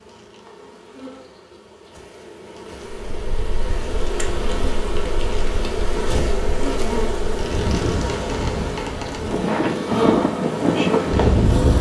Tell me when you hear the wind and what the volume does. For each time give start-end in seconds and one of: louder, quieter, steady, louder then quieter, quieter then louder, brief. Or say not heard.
3.1-11.7 louder.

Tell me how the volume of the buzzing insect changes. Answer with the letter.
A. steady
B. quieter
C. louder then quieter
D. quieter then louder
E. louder
E.